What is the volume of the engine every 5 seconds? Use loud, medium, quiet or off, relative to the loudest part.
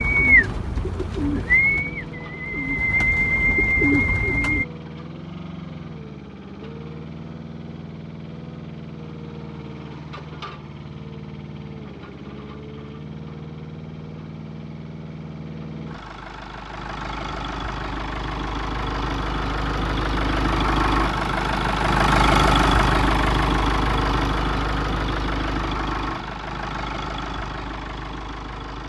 quiet, quiet, quiet, medium, loud, medium.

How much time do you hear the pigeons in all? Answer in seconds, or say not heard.
5 s.